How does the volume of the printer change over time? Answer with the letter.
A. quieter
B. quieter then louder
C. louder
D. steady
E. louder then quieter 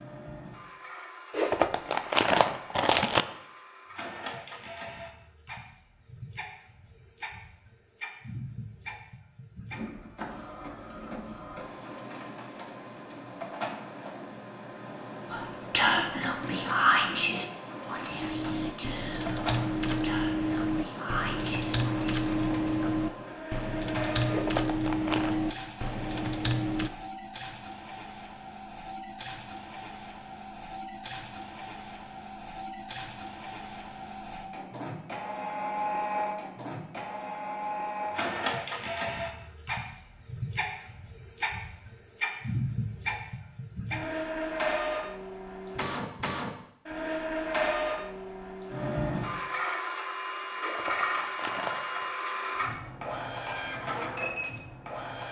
C.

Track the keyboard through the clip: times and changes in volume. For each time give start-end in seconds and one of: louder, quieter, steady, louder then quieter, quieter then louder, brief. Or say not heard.
18.1-26.9 steady.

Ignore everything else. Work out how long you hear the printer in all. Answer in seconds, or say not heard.
55 s.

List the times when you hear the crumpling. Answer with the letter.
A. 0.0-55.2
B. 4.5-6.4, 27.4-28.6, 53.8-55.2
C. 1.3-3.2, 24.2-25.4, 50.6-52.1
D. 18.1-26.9
C.